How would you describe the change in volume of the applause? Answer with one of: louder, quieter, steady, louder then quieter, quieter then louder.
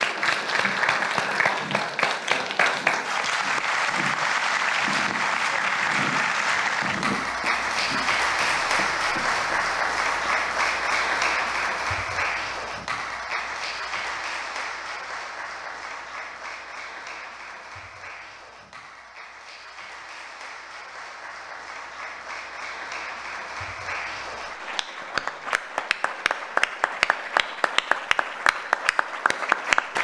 quieter then louder.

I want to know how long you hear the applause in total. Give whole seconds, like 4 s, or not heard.
30 s.